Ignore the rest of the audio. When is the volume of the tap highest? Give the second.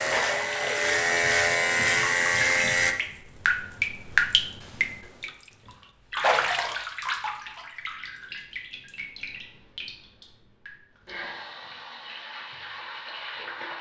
4 s.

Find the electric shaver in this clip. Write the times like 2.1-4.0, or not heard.
0.0-3.0.